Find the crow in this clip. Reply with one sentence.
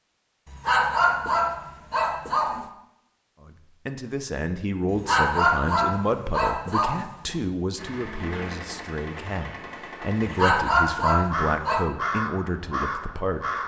The crow can be heard from 11.1 to 13.6 s.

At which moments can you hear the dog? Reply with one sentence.
The dog can be heard from 0.5 to 2.6 s, from 4.9 to 7.3 s and from 10.2 to 11.9 s.